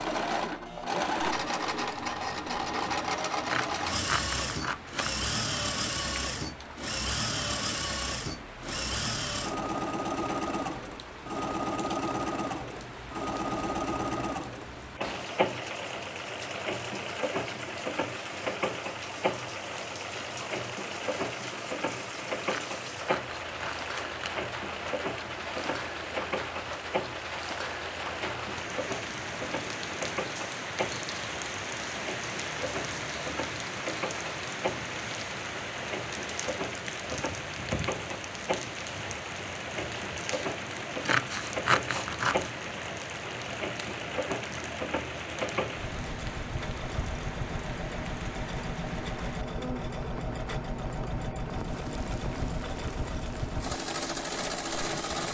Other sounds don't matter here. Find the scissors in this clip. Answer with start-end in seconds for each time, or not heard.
3.5-5.2, 22.4-24.4, 41.0-42.5.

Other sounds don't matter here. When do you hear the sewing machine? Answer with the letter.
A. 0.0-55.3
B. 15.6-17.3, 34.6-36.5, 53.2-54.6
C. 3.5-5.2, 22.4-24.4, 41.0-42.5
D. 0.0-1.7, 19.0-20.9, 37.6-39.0
A.